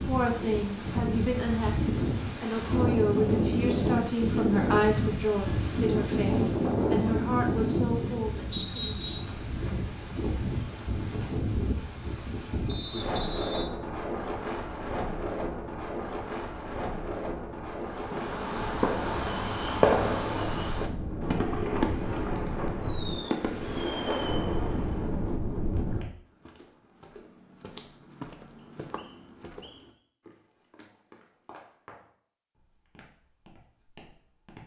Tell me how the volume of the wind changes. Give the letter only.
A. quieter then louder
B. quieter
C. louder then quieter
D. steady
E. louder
B.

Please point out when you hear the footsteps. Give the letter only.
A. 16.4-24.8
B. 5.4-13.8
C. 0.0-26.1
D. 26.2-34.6
D.